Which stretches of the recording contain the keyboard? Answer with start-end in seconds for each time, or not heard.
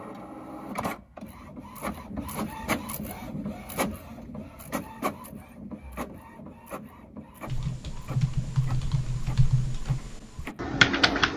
7.5-11.3.